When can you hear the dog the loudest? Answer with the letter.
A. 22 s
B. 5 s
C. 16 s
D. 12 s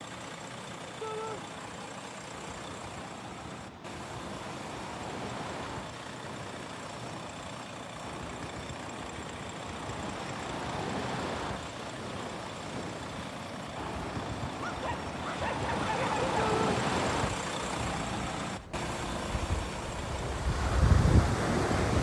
C.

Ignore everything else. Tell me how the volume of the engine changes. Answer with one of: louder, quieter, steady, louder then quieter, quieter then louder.
louder.